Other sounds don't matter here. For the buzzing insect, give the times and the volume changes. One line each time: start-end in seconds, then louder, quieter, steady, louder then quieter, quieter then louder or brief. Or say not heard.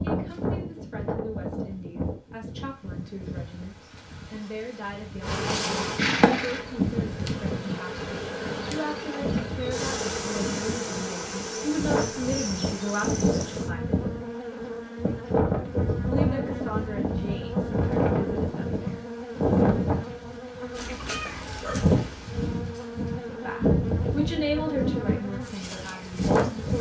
5.2-26.7 quieter.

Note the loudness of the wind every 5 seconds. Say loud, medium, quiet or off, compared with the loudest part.
medium, medium, medium, loud, loud, loud.